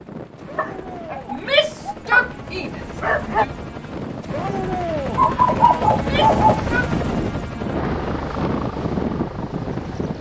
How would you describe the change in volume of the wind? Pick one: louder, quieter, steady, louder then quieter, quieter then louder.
louder.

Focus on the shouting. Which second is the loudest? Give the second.
2 s.